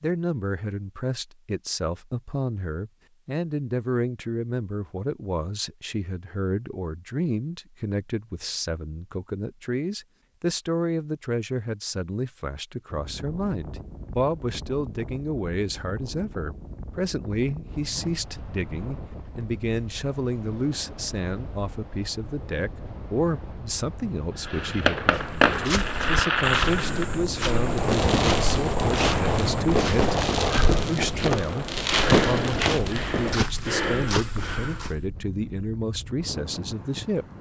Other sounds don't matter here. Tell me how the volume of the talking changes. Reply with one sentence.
The volume of the talking stays about the same.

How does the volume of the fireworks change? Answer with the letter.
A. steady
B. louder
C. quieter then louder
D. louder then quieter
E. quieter
A.